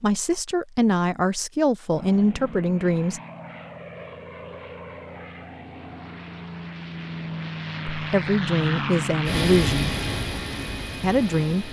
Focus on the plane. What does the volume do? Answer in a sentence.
The loudness of the plane goes up.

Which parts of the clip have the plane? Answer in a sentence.
You can hear the plane from 1.9 to 11.6 s.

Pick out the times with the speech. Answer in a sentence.
You can hear the speech from 0.0 to 3.2 s, from 7.9 to 9.9 s and from 11.0 to 11.6 s.